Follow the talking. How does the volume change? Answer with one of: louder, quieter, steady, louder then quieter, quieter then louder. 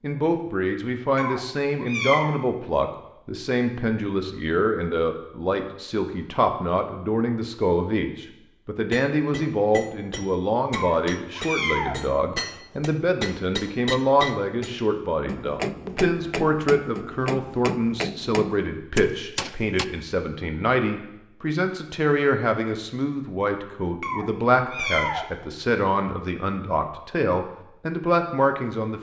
steady.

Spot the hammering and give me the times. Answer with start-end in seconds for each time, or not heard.
8.8-19.9.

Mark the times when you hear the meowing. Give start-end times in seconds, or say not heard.
1.1-2.4, 10.7-12.0, 24.0-25.3.